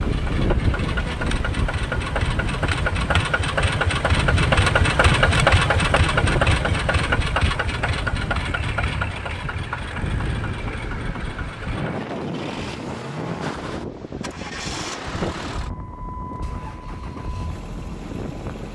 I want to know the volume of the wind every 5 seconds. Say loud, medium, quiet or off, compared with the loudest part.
loud, loud, loud, medium.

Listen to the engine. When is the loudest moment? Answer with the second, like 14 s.
5 s.